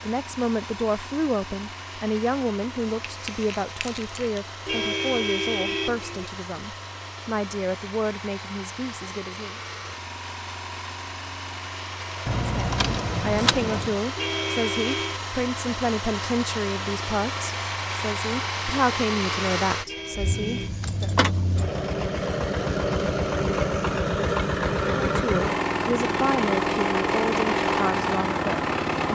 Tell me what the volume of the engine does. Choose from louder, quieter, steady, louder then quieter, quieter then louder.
louder.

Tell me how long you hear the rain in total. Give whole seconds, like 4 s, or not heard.
not heard.